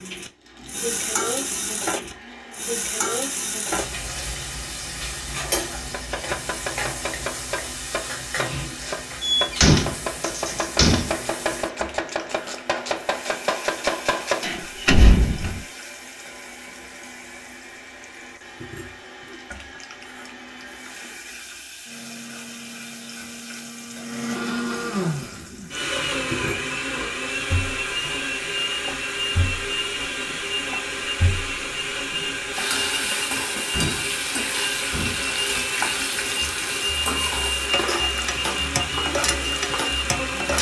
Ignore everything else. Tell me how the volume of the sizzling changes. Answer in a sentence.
The loudness of the sizzling goes down, then up.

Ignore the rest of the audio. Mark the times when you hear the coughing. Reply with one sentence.
You can't hear the coughing here.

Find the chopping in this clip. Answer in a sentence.
The chopping can be heard from 5.9 to 14.5 s and from 36.4 to 40.5 s.